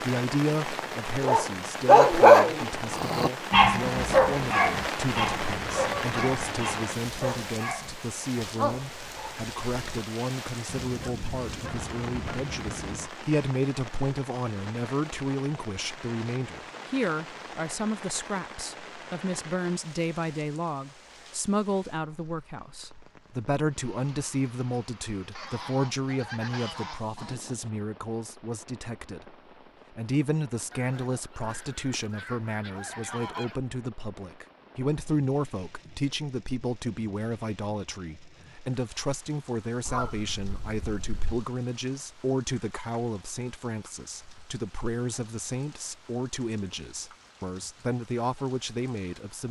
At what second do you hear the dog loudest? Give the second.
2 s.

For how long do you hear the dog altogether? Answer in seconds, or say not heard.
9 s.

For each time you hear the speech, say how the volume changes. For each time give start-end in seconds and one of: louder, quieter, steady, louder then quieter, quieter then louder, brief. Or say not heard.
0.0-49.4 steady.